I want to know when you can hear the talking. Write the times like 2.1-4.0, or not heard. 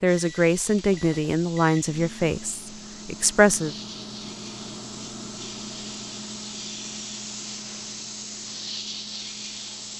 0.0-3.8.